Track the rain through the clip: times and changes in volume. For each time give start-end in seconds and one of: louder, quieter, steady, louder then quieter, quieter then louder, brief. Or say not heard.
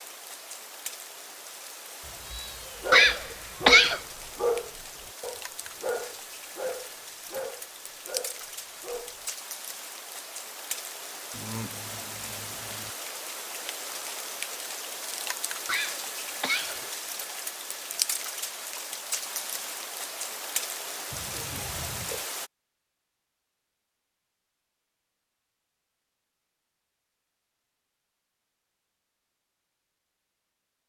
0.0-22.5 louder.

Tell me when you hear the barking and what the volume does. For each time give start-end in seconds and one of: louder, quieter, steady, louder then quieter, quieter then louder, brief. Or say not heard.
2.8-9.2 quieter.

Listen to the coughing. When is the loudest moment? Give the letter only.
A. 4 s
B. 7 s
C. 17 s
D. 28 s
A.